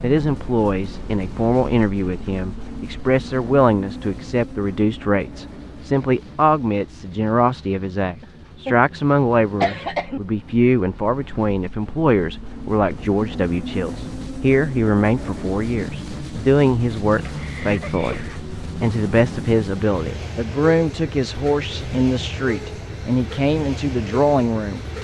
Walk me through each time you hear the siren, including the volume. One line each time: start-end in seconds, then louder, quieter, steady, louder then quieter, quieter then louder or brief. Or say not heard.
not heard.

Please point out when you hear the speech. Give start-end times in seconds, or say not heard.
0.0-24.9.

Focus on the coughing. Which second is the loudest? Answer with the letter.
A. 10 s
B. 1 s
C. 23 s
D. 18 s
A.